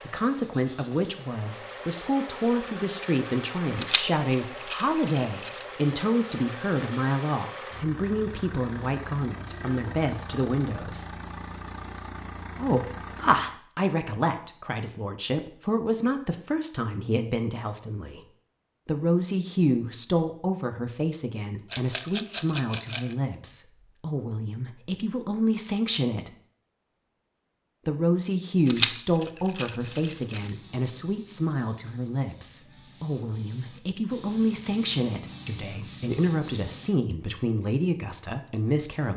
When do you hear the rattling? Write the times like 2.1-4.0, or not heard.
3.8-5.7, 21.7-23.1, 28.6-30.5.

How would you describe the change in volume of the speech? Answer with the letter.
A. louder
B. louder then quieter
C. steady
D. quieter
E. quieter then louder
C.